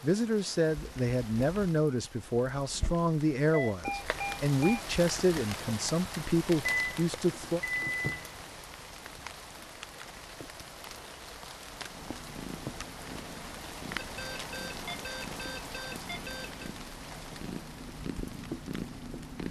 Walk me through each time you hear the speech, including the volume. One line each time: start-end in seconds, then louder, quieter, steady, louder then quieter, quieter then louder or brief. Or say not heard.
0.0-7.6 steady.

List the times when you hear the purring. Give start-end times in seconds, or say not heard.
11.8-19.4.